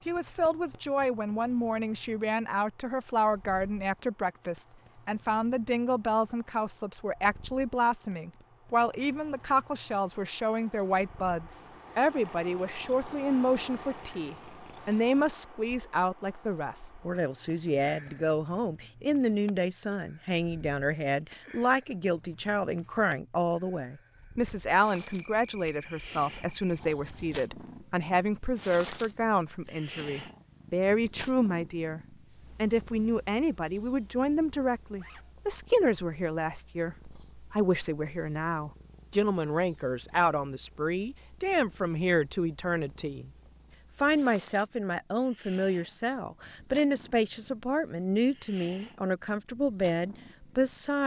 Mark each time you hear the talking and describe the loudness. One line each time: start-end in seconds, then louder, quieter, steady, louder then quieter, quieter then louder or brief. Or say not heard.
0.1-43.3 steady
44.0-51.0 steady.